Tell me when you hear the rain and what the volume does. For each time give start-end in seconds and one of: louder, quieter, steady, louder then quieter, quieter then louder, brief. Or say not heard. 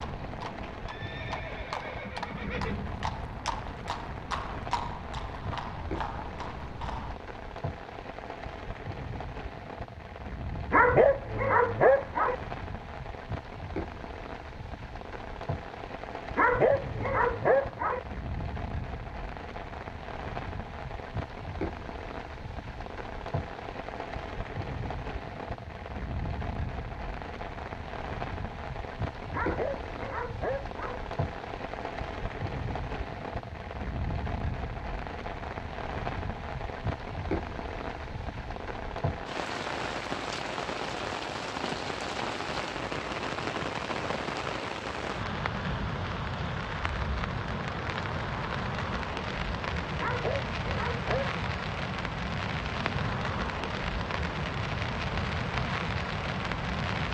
0.0-57.1 louder.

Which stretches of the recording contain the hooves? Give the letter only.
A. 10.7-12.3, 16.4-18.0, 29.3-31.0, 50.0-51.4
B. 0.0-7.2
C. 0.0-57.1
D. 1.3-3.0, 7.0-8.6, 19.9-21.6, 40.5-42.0
B.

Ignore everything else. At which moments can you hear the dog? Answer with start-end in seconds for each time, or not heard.
10.7-12.3, 16.4-18.0, 29.3-31.0, 50.0-51.4.